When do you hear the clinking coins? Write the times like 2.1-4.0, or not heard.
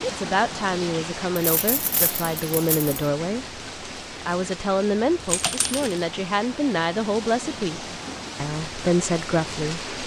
1.4-3.0, 5.2-6.0.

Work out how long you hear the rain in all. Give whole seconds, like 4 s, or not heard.
10 s.